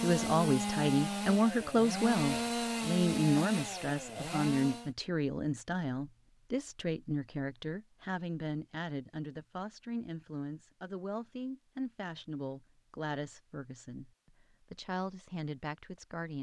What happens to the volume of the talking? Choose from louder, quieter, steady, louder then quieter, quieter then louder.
quieter.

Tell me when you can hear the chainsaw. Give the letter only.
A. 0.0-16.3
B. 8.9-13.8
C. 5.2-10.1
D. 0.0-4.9
D.